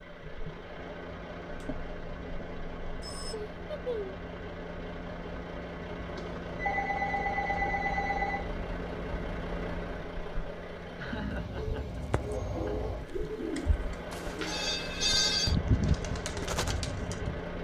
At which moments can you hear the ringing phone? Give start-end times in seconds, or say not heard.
1.4-3.4, 6.2-8.4, 14.1-15.6.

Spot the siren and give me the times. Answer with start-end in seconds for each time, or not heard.
not heard.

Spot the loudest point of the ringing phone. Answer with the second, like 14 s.
15 s.